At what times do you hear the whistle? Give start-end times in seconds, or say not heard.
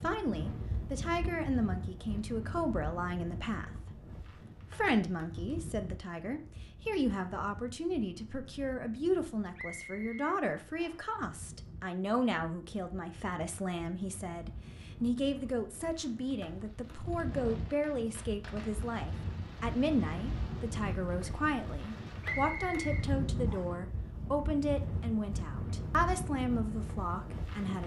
9.6-11.2, 22.2-23.7.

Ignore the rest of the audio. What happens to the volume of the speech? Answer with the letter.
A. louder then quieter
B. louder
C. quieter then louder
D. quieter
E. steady
E.